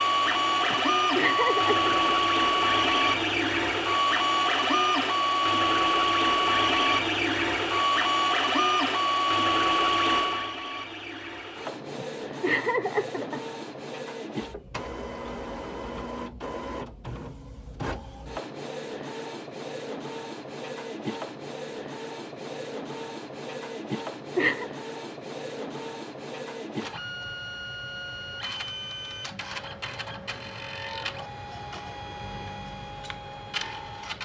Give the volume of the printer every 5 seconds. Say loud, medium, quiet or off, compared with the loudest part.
loud, loud, medium, quiet, quiet, quiet, quiet.